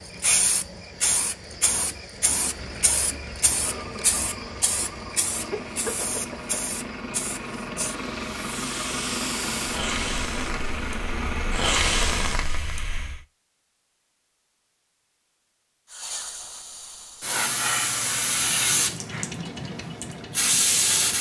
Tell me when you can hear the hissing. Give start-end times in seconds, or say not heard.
0.0-13.2, 15.9-21.1.